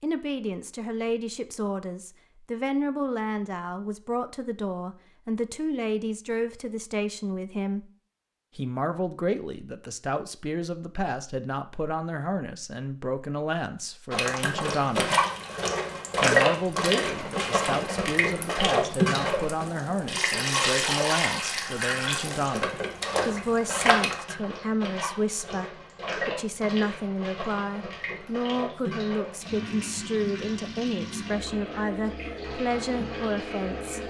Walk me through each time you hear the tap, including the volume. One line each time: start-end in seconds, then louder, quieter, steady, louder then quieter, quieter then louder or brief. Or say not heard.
14.1-34.0 quieter.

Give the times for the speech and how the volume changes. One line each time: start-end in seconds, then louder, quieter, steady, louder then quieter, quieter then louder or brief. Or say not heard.
0.0-7.9 steady
8.6-15.2 steady
16.1-34.0 steady.